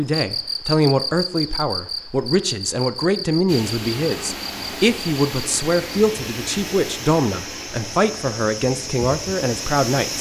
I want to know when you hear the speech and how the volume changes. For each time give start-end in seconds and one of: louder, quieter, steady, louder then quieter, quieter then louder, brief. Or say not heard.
0.0-10.1 steady.